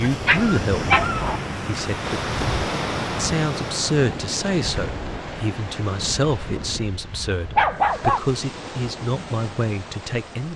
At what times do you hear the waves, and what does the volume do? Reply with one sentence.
You can hear the waves from 0.0 to 10.5 s, getting quieter.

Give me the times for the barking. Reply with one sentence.
You can hear the barking from 0.1 to 1.4 s and from 7.1 to 8.2 s.